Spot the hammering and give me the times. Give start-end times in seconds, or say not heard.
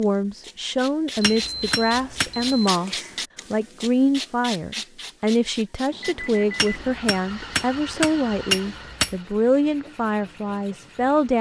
1.2-2.7, 6.5-9.2.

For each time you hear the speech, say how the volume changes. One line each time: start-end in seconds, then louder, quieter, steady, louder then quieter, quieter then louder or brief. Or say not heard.
0.0-11.3 steady.